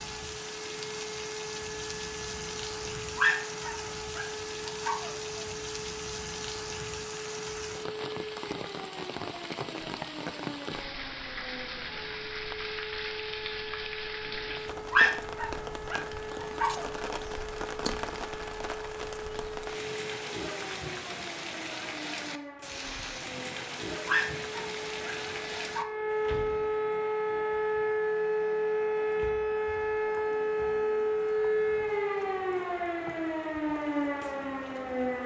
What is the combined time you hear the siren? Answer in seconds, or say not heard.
35 s.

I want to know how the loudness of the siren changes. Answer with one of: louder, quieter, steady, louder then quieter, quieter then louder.
louder.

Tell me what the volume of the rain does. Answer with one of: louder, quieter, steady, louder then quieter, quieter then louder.
quieter.